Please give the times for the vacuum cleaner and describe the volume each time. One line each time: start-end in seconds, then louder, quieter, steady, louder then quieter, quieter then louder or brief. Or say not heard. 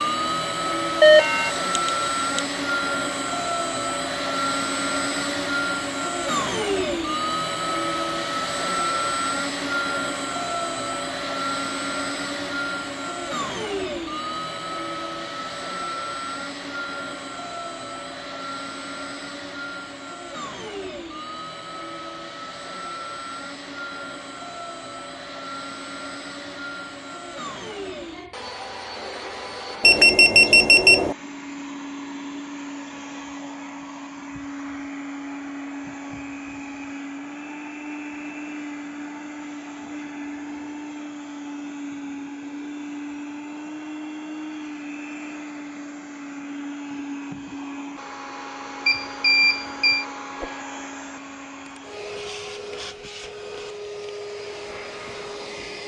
0.0-55.8 quieter.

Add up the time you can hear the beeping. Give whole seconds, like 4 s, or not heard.
4 s.